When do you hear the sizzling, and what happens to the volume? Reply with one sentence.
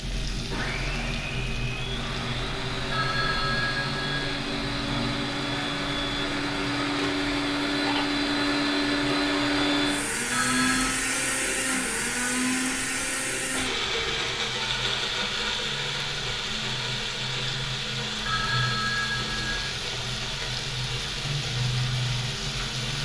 You can hear the sizzling from 0.0 to 23.0 s, getting quieter then louder.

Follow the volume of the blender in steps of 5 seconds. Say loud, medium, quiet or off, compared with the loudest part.
medium, loud, loud, medium, medium.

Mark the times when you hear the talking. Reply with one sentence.
You can't hear the talking here.